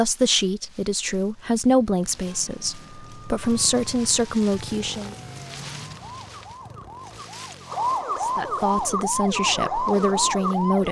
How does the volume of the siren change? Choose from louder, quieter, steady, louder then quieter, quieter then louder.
louder.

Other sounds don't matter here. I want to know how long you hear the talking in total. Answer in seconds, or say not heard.
8 s.